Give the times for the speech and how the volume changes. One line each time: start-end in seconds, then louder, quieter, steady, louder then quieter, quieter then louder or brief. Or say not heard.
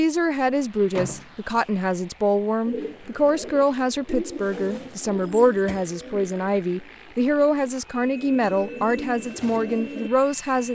0.0-10.6 steady.